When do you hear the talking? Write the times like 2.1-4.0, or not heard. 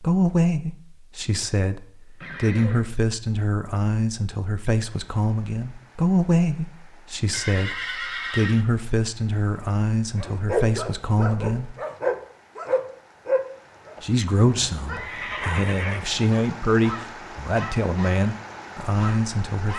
0.0-11.8, 14.0-19.7.